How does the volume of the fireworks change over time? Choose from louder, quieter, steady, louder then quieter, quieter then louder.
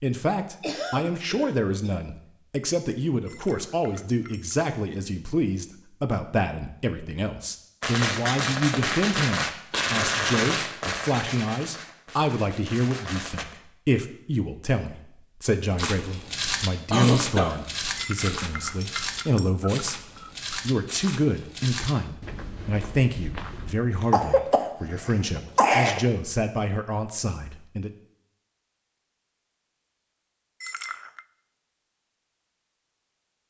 quieter.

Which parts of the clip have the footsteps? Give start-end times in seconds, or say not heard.
15.8-23.8.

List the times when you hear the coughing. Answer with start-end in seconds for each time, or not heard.
0.6-1.6, 16.9-17.6, 24.0-26.0.